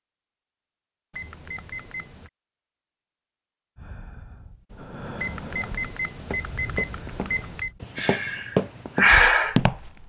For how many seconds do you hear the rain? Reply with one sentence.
The rain can't be heard in this clip.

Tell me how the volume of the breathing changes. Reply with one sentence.
The volume of the breathing goes up.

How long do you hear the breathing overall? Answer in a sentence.
The breathing can be heard for 6 seconds in total.